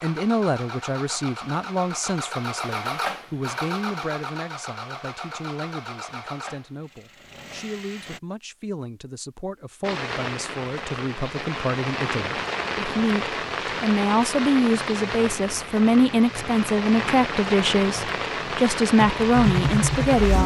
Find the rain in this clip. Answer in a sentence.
The rain can be heard from 9.8 to 20.4 s.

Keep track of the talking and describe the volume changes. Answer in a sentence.
The volume of the talking goes down, then up.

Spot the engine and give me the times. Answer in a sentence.
The engine can be heard from 0.0 to 8.2 s and from 14.7 to 20.4 s.